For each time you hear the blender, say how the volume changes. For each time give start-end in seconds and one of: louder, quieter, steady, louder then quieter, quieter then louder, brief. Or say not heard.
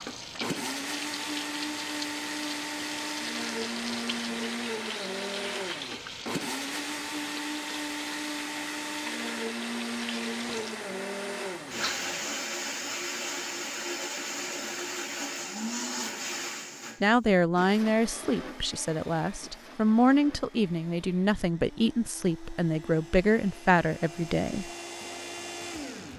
0.0-26.1 quieter.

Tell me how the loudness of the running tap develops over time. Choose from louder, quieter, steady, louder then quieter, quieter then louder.
steady.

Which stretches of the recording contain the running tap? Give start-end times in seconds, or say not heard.
0.0-12.4.